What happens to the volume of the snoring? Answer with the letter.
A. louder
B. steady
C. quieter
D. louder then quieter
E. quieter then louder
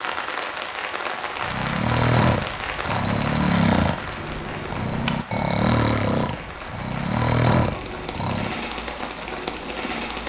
B.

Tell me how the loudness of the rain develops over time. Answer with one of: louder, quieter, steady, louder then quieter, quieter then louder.
quieter then louder.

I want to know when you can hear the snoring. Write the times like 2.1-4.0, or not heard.
1.4-8.6.